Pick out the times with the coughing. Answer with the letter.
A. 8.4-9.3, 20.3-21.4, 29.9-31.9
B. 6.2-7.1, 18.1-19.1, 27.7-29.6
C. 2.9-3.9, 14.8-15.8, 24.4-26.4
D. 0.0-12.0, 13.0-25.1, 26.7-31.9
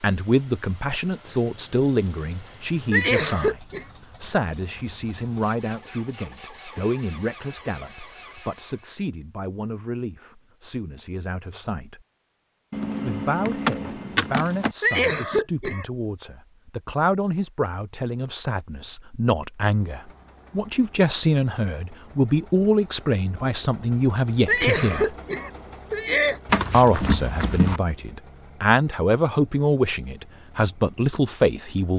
C.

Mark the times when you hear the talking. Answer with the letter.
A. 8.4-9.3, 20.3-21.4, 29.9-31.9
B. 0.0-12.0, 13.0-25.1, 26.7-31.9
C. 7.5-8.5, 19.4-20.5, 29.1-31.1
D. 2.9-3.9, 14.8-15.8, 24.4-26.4
B.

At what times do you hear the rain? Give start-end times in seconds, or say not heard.
not heard.